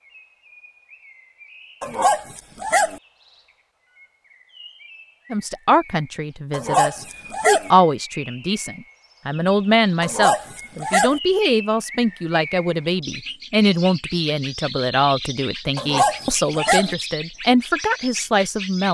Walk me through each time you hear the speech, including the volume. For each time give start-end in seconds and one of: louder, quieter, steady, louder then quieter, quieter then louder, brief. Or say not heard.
5.3-18.8 steady.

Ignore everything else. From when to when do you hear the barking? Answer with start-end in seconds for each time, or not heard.
1.8-3.0, 6.5-7.7, 10.0-11.2, 15.8-16.9.